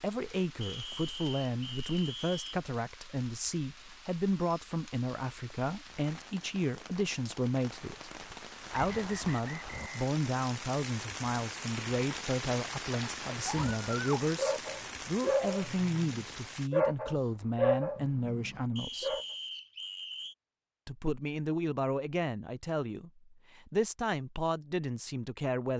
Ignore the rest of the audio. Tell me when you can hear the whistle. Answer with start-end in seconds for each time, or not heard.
0.6-2.5, 8.7-10.2, 18.8-20.4.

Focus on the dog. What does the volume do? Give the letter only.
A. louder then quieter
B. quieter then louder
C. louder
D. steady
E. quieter
A.